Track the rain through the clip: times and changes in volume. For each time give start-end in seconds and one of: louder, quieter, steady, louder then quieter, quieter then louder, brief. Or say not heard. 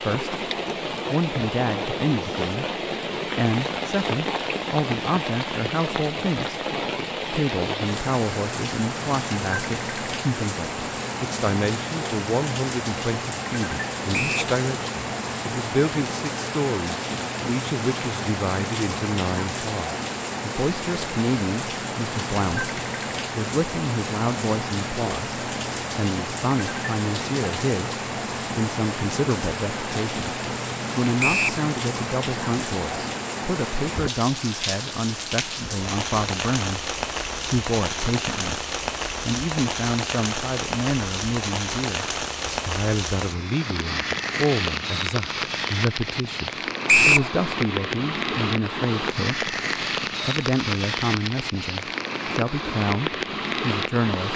0.0-54.3 steady.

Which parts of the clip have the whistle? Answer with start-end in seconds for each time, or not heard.
14.1-14.6, 31.2-31.6, 46.9-47.3.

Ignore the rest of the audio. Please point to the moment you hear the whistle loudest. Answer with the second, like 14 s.
47 s.